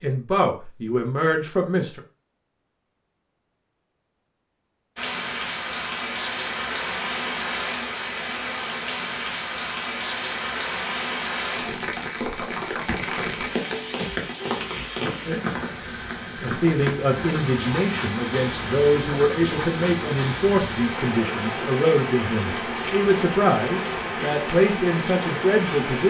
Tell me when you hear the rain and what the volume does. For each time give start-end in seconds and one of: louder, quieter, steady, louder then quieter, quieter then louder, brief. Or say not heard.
5.0-26.0 steady.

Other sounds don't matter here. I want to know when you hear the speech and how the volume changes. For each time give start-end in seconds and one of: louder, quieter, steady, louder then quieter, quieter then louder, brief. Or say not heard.
0.0-2.0 brief
16.4-26.0 steady.